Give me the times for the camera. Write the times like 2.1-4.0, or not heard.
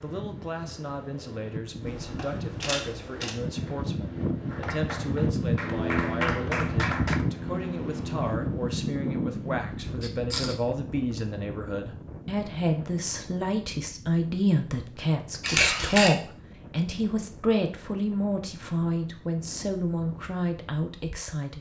1.9-3.4, 10.0-10.6, 15.4-16.1.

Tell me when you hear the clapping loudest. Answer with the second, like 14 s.
6 s.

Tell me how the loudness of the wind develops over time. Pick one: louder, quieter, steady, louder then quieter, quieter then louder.
louder then quieter.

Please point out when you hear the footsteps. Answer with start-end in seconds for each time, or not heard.
not heard.